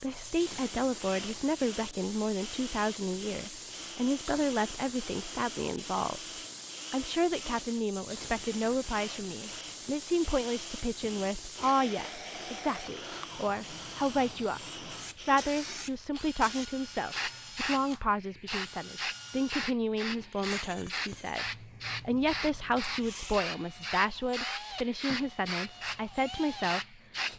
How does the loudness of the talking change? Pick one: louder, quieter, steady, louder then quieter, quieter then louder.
steady.